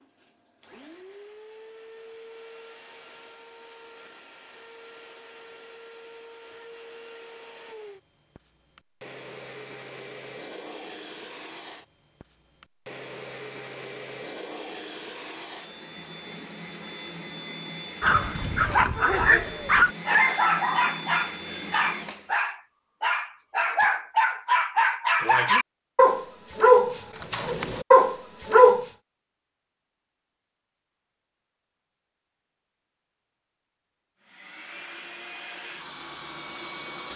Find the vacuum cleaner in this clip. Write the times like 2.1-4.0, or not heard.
0.0-22.6, 34.2-37.1.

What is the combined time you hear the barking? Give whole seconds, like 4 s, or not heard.
11 s.